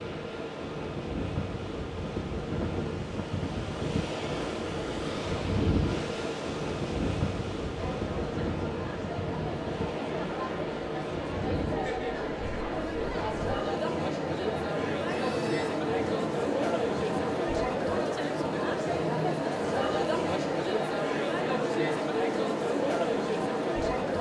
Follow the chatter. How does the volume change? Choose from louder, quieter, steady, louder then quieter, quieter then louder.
louder.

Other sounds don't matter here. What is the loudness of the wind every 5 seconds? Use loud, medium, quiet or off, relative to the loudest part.
loud, loud, medium, medium, off.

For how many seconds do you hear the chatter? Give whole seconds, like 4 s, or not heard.
16 s.